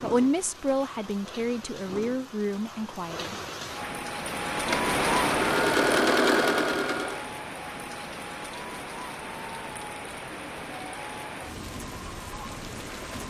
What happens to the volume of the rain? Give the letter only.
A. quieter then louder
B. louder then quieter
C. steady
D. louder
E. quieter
B.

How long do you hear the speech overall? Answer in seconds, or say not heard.
3 s.